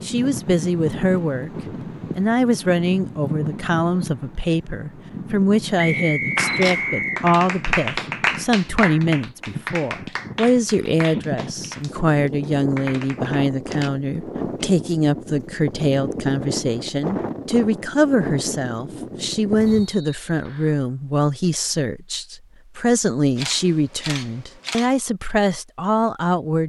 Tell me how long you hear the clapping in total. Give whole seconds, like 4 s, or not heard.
7 s.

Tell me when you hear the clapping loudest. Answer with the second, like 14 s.
8 s.